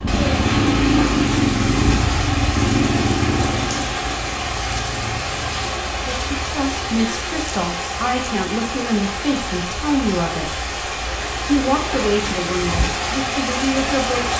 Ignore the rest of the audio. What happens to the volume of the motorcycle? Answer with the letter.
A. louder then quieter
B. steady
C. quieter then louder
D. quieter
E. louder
D.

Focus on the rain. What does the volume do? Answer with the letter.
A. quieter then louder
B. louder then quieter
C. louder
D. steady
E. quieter
D.